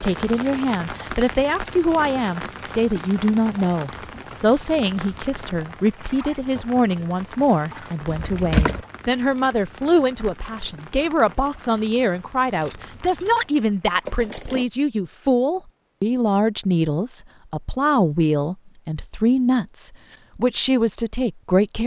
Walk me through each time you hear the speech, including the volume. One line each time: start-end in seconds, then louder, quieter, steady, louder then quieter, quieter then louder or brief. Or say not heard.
0.0-21.8 steady.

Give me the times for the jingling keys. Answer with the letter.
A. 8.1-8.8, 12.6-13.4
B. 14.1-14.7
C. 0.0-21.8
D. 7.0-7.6
A.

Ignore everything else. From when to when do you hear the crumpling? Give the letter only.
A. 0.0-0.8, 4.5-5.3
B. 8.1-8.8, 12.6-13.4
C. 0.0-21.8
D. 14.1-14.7
D.